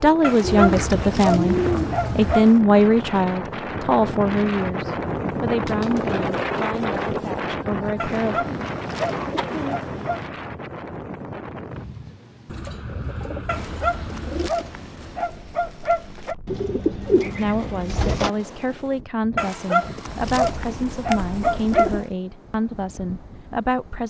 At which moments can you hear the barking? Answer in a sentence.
You can hear the barking from 0.2 to 2.5 s, from 8.0 to 10.2 s, from 13.4 to 16.4 s and from 19.4 to 22.0 s.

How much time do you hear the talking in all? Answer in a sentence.
The talking can be heard for 15 seconds in total.